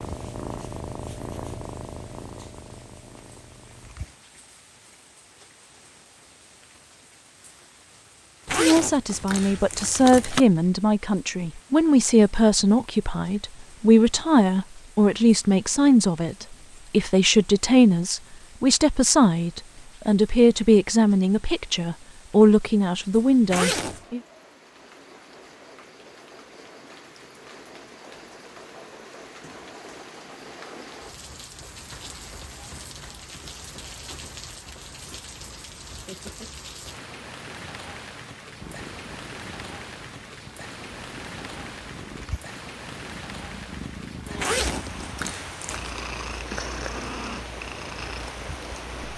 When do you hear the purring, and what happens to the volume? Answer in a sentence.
The purring can be heard from 0.0 to 4.2 s, getting quieter; and from 38.5 to 49.1 s, getting louder.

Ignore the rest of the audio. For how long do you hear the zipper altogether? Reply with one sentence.
You can hear the zipper for 4 seconds altogether.